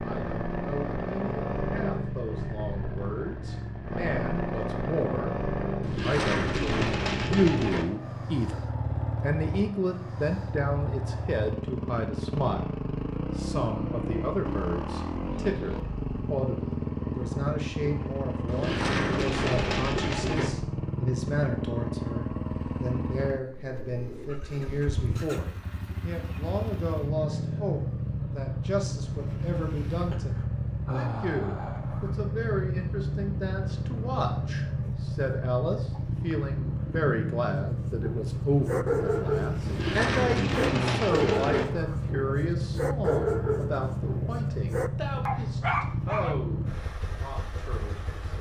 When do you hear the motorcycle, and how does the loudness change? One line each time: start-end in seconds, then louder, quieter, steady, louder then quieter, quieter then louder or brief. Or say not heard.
0.0-48.3 steady.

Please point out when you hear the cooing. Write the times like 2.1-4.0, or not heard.
5.8-7.8, 18.4-20.5, 39.6-41.6.